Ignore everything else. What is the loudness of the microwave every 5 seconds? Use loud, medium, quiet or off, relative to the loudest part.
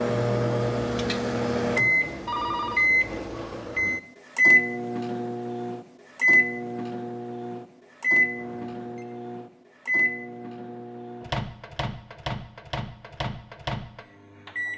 loud, loud, medium.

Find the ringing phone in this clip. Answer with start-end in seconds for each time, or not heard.
2.2-2.9, 8.3-9.1.